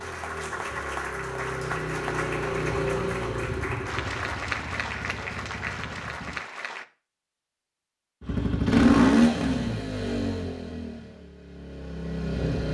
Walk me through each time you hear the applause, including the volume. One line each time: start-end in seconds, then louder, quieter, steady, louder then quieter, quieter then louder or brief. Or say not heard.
0.0-6.8 steady.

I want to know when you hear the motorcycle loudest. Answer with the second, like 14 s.
9 s.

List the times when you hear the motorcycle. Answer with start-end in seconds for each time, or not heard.
0.0-6.4, 8.2-12.6.